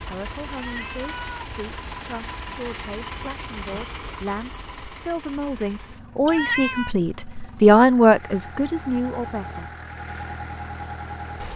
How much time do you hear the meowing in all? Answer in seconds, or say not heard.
2 s.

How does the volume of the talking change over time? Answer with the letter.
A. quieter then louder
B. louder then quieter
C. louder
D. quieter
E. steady
C.